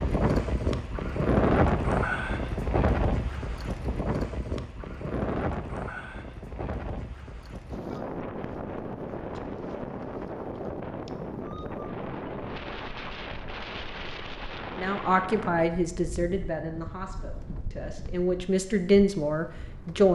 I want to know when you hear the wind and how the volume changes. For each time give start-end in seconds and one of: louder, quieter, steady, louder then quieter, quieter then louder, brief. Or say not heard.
0.0-20.1 quieter.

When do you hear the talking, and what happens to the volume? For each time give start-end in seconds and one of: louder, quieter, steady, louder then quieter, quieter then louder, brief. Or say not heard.
14.8-20.1 quieter then louder.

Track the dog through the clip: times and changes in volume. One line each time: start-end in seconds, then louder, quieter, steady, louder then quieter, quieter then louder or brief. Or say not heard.
not heard.